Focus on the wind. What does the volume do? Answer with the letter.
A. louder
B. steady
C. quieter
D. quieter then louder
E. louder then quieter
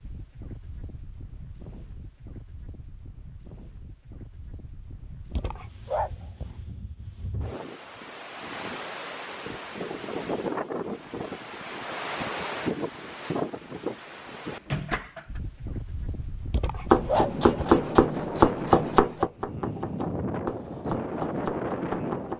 A.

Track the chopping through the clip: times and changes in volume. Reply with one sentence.
You can hear the chopping from 16.9 to 22.3 s, getting quieter.